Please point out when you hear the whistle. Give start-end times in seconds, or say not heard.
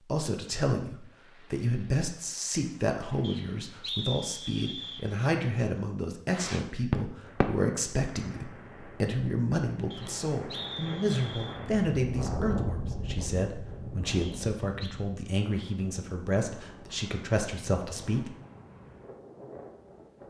3.2-5.0, 9.9-11.6, 14.2-14.9.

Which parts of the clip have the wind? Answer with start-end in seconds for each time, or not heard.
7.2-20.2.